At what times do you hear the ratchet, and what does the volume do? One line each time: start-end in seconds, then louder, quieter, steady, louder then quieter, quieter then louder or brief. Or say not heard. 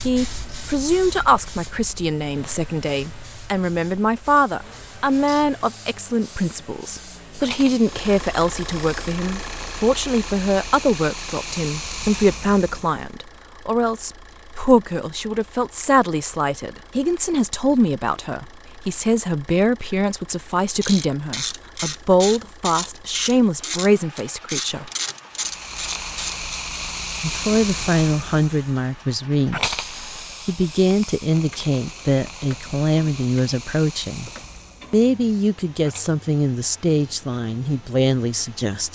20.8-26.4 steady.